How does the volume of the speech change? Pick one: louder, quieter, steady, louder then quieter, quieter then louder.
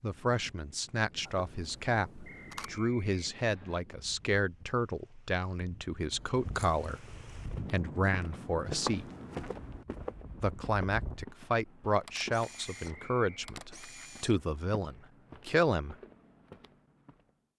steady.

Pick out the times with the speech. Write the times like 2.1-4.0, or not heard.
0.0-9.1, 10.4-15.9.